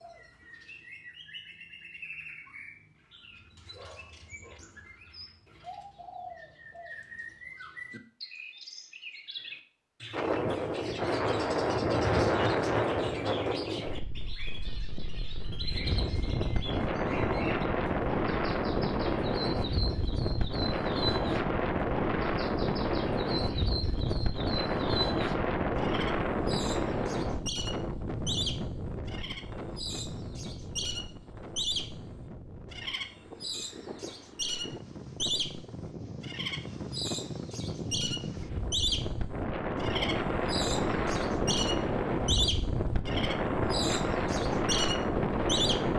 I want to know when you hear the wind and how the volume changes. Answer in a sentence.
You can hear the wind from 10.1 to 45.9 s, getting quieter then louder.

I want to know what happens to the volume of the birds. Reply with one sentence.
The volume of the birds goes up.